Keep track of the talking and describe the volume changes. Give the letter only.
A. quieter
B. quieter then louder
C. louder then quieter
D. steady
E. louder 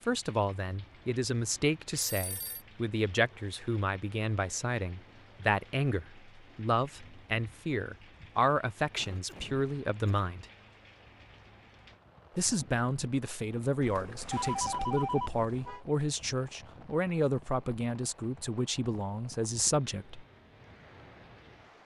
D.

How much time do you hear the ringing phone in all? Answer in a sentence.
The ringing phone can be heard for 3 seconds in total.